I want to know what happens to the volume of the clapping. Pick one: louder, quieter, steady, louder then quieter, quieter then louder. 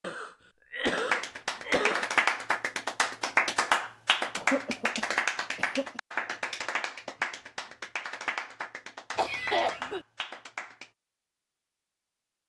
quieter.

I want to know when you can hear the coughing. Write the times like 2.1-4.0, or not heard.
0.0-2.0, 4.3-6.0, 9.2-10.0.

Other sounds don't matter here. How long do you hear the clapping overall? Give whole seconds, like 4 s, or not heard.
10 s.